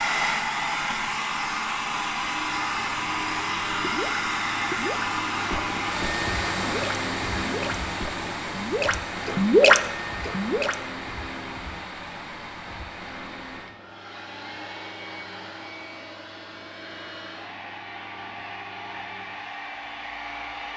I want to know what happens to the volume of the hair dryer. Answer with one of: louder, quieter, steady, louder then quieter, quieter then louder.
quieter.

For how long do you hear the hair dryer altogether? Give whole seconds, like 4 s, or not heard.
21 s.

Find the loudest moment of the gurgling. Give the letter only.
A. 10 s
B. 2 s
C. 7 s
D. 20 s
A.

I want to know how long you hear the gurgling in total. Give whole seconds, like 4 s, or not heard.
7 s.